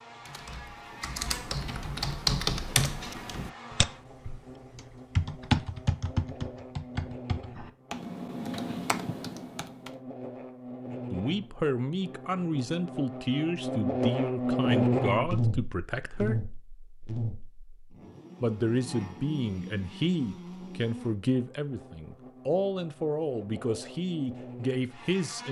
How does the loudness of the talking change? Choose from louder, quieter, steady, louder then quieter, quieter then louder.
steady.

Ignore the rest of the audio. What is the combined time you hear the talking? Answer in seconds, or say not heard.
12 s.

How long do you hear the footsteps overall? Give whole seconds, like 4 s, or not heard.
not heard.